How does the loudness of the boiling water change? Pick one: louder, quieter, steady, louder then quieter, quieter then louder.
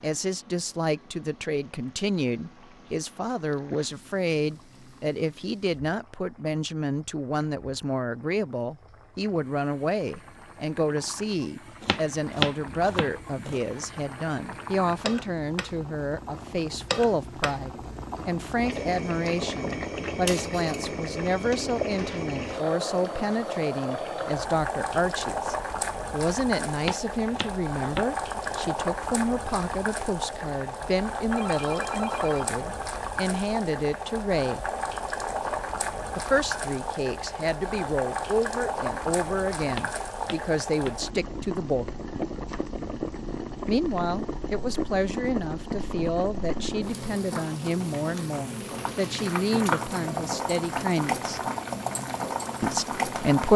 louder.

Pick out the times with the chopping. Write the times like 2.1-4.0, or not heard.
11.8-13.6, 26.8-28.6, 39.7-41.1.